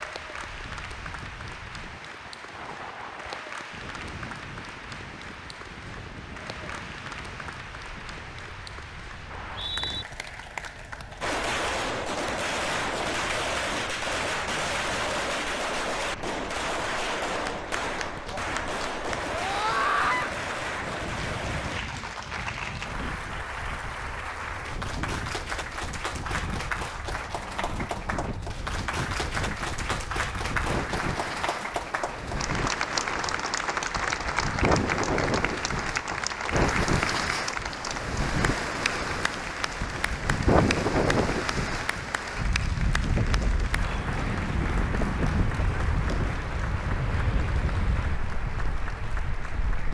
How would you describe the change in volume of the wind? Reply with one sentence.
The volume of the wind goes up.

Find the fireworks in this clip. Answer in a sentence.
The fireworks can be heard from 11.2 to 21.8 s.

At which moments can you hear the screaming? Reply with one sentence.
The screaming can be heard from 19.3 to 20.3 s.